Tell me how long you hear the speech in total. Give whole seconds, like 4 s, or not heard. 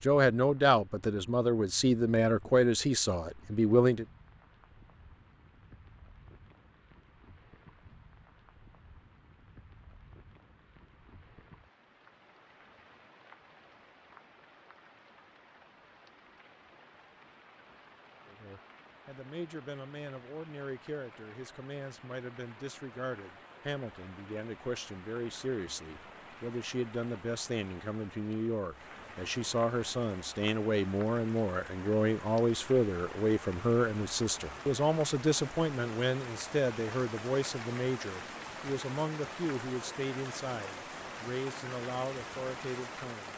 29 s.